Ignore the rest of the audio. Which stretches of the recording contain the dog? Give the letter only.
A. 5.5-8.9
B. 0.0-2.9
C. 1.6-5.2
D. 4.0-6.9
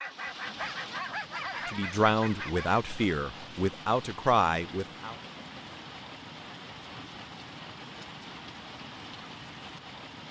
B.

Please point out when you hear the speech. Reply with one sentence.
The speech can be heard from 1.6 to 5.2 s.